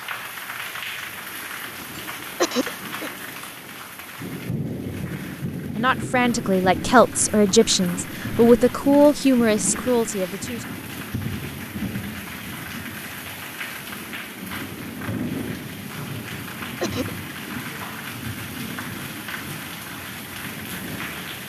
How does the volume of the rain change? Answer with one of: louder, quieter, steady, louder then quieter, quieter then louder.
steady.